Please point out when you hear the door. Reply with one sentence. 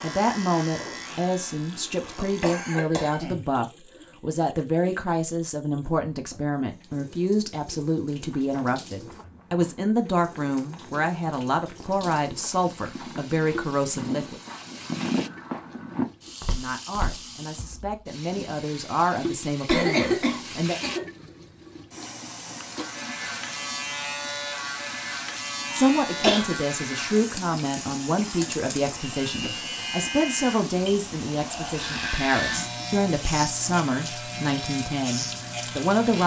You can't hear the door here.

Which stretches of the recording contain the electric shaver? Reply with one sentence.
You can hear the electric shaver from 0.0 to 2.6 s and from 22.7 to 36.2 s.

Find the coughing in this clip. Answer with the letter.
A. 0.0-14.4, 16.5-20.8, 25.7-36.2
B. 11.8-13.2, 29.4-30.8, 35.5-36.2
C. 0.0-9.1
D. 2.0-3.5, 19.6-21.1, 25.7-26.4
D.